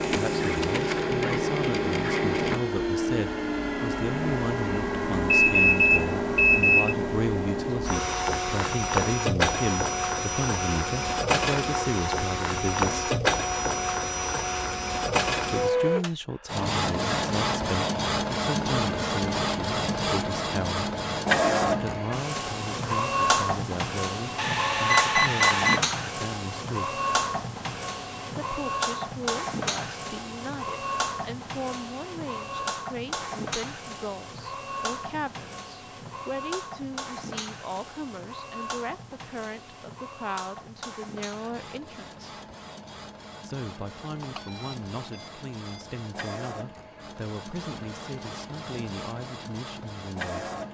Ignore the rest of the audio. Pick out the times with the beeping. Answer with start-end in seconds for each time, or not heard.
5.3-7.0, 24.4-25.8, 44.2-46.4.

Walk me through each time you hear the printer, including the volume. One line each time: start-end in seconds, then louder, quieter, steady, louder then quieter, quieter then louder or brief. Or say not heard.
0.0-50.6 quieter.